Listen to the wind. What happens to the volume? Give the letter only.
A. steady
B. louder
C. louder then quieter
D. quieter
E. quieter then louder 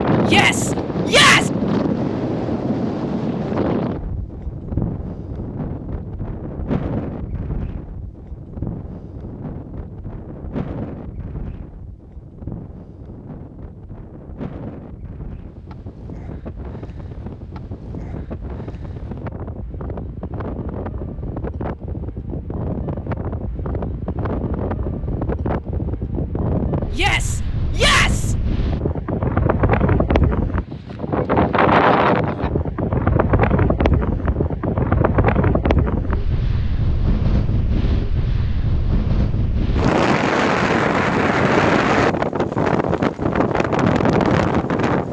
E.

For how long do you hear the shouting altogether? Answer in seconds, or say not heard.
3 s.